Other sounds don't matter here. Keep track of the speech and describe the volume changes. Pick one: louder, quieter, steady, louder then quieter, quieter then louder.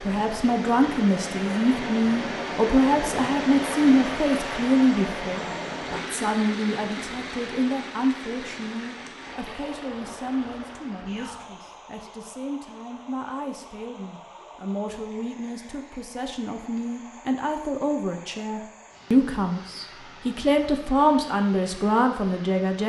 quieter then louder.